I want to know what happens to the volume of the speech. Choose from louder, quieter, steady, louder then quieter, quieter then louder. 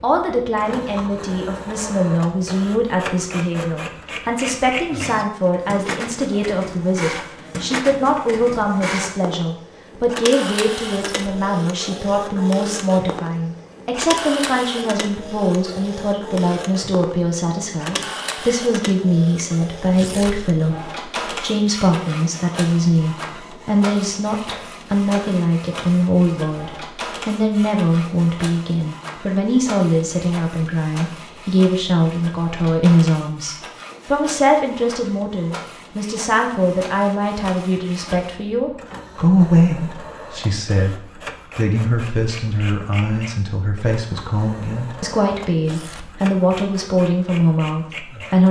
steady.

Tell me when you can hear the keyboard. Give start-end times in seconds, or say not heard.
not heard.